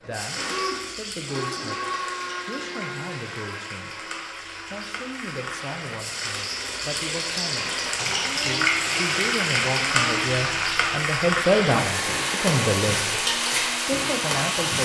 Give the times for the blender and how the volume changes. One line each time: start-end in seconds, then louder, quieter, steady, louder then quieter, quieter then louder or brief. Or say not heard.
0.0-14.7 quieter then louder.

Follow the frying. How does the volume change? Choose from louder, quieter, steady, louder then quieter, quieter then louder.
louder.